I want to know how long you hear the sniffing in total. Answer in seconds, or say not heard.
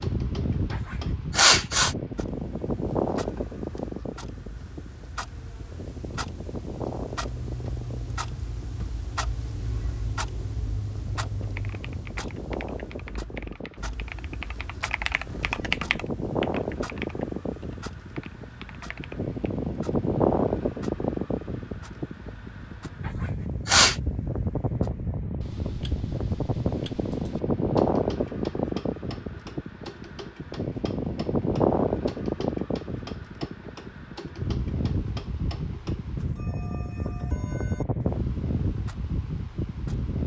2 s.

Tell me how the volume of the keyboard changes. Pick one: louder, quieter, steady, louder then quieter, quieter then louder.
louder then quieter.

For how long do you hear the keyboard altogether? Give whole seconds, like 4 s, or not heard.
8 s.